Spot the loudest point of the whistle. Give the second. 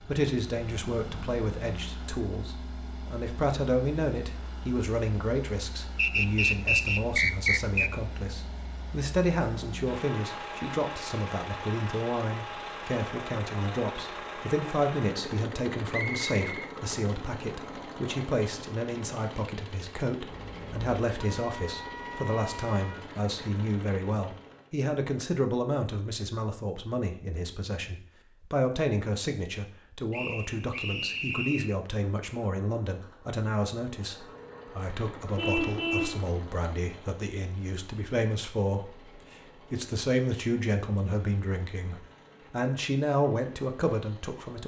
7 s.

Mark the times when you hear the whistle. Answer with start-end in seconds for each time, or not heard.
6.0-8.0, 15.9-16.8, 30.1-31.8.